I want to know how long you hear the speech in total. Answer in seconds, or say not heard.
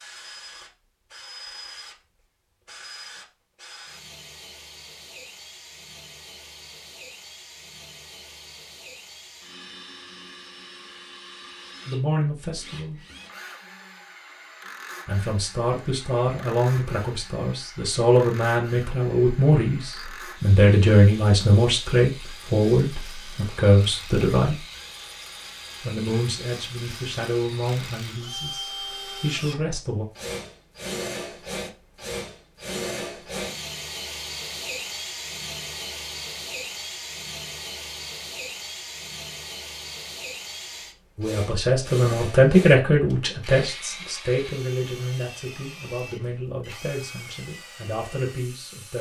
23 s.